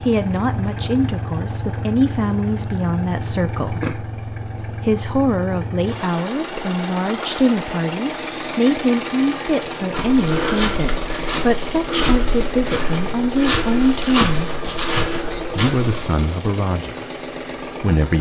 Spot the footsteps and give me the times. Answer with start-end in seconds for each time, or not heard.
9.9-16.1.